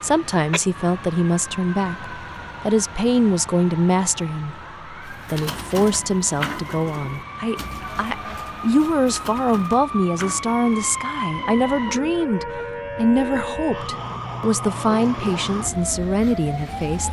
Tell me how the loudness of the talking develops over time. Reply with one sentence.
The loudness of the talking stays about the same.